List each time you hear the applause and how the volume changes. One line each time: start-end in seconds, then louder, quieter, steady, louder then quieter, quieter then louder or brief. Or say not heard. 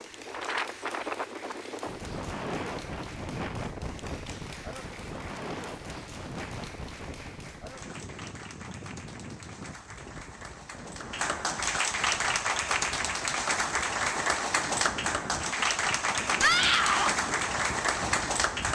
0.0-18.7 louder.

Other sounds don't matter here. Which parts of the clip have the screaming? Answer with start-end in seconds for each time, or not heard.
16.4-17.1.